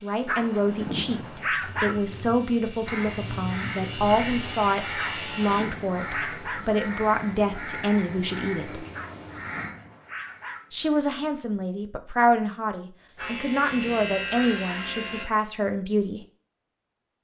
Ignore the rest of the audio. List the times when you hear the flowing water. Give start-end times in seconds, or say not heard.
not heard.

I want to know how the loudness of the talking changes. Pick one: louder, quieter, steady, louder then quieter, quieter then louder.
steady.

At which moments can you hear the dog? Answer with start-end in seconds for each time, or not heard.
0.2-1.9, 5.0-6.7, 8.9-10.6, 13.2-14.8.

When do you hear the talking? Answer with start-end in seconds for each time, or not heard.
0.0-8.8, 10.7-16.2.